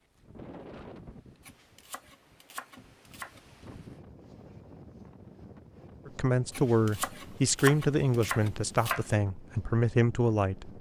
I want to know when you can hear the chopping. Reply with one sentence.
You can hear the chopping from 1.4 to 3.4 s and from 6.5 to 9.1 s.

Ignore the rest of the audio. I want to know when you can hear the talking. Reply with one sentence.
You can hear the talking from 6.0 to 10.7 s.